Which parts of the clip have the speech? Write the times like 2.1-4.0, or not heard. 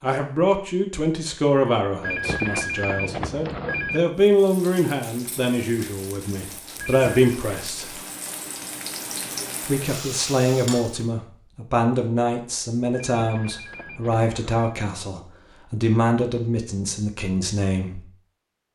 0.0-8.0, 9.7-18.1.